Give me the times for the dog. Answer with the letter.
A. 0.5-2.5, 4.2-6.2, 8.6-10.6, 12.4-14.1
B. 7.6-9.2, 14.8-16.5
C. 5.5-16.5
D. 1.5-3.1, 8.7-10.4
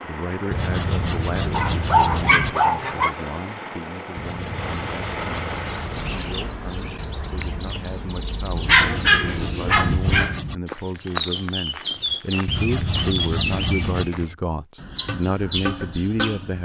D.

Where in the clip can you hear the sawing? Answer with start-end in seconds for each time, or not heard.
0.5-2.5, 4.2-6.2, 8.6-10.6, 12.4-14.1.